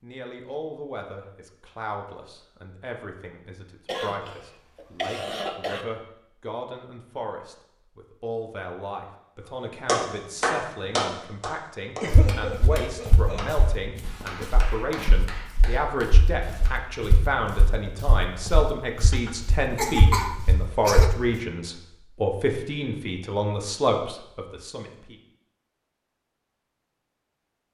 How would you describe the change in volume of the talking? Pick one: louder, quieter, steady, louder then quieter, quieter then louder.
louder.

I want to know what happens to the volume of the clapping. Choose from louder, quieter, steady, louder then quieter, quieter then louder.
quieter.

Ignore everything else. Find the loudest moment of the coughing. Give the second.
20 s.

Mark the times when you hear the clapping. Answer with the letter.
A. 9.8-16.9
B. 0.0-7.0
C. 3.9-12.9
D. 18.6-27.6
A.